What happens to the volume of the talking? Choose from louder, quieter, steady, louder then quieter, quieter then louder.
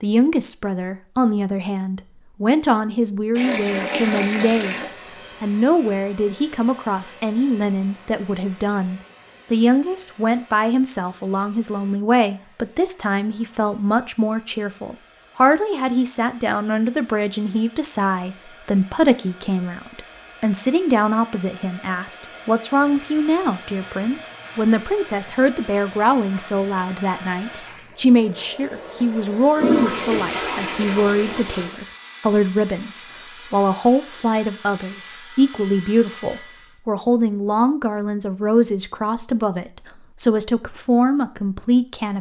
steady.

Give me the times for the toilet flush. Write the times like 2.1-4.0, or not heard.
3.4-4.9, 29.6-31.7.